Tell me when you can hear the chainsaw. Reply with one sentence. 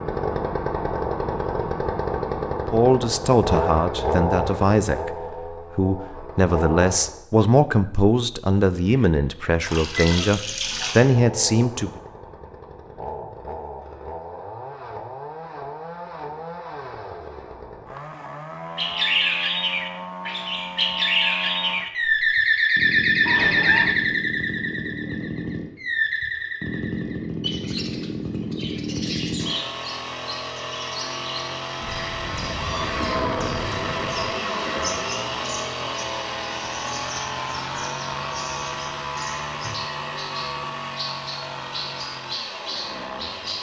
You can hear the chainsaw from 0.0 to 7.2 s and from 10.7 to 43.5 s.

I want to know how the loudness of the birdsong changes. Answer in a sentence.
The volume of the birdsong goes down.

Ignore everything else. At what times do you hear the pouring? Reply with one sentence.
The pouring can be heard from 9.7 to 11.1 s.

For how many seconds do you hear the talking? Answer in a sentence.
The talking can be heard for 9 seconds in total.